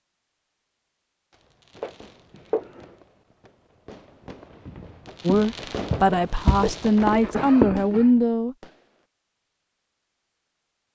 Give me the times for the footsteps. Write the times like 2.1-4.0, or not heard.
4.7-8.2.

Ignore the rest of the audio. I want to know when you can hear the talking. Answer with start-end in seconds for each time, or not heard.
5.2-8.6.